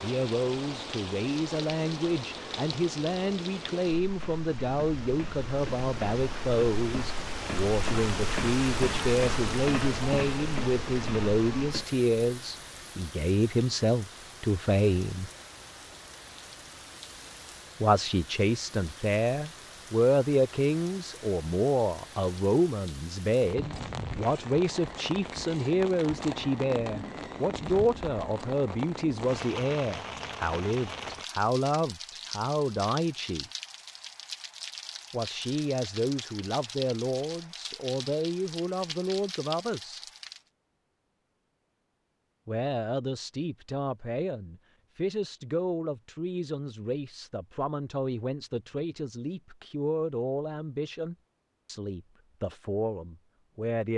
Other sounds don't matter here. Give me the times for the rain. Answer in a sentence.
The rain can be heard from 0.0 to 40.5 s.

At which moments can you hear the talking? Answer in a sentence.
You can hear the talking from 0.0 to 15.3 s, from 17.8 to 33.5 s, from 35.1 to 40.0 s and from 42.5 to 53.9 s.